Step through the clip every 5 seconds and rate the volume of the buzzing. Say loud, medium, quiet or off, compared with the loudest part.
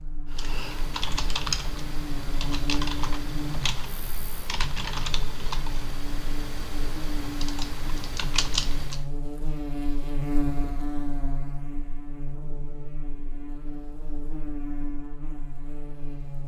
loud, loud, loud, medium.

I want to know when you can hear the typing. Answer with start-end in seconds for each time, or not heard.
0.3-9.1.